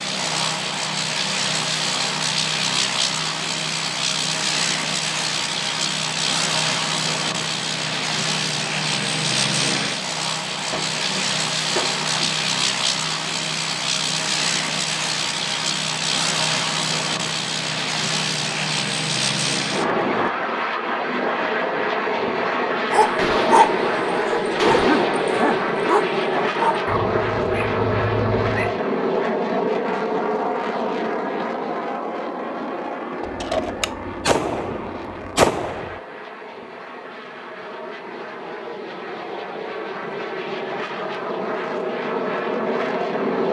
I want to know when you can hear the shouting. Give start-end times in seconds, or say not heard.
not heard.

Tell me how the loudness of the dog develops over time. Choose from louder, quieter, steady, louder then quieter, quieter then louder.
quieter.